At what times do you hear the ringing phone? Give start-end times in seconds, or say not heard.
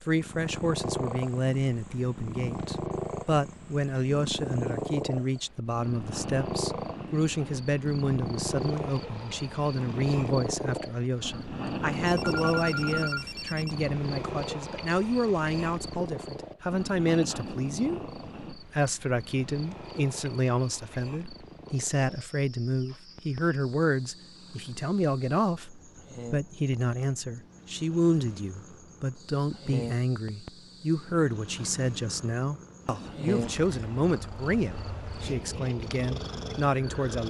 12.1-13.8.